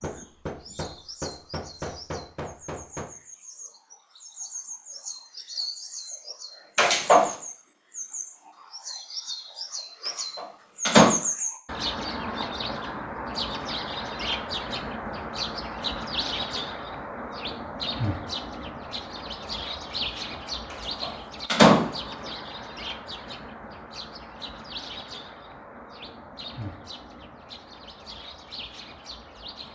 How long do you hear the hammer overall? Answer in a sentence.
You can hear the hammer for 3 seconds altogether.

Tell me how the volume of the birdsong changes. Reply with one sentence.
The loudness of the birdsong goes up, then down.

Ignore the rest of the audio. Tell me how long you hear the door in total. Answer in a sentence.
You can hear the door for 2 seconds altogether.